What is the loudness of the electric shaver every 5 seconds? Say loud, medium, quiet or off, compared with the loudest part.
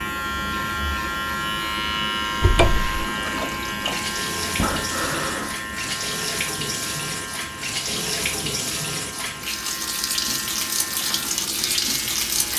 loud, medium, medium.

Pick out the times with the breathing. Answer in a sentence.
The breathing can be heard from 4.5 to 5.5 s.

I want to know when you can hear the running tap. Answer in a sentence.
You can hear the running tap from 3.0 to 12.5 s.